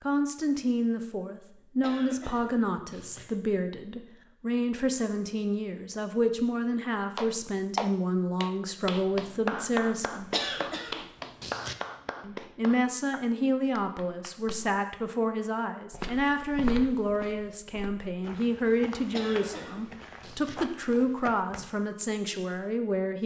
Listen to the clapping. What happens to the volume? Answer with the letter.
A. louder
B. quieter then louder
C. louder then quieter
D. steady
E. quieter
E.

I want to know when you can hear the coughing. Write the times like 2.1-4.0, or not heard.
1.8-3.2, 10.3-11.8, 19.1-20.6.